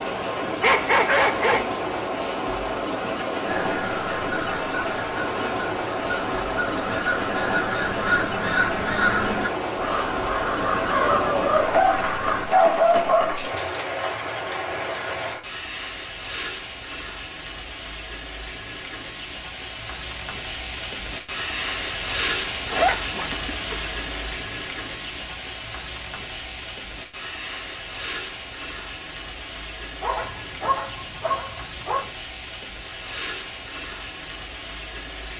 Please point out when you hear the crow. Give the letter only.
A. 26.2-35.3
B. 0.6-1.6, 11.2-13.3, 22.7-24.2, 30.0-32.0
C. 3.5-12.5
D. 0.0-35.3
C.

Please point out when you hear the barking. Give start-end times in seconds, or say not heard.
0.6-1.6, 11.2-13.3, 22.7-24.2, 30.0-32.0.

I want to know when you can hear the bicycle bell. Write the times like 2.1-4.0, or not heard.
not heard.